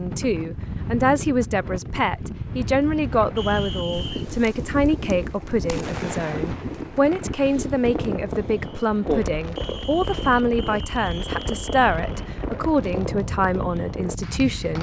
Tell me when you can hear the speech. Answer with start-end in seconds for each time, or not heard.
0.0-14.7.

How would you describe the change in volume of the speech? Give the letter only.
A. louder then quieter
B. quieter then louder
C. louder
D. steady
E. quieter
D.